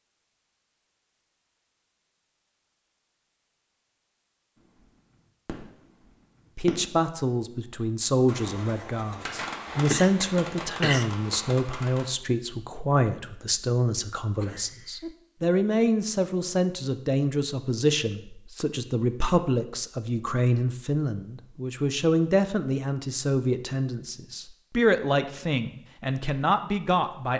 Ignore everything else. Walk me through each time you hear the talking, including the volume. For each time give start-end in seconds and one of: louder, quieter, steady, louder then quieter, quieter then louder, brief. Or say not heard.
6.5-27.3 steady.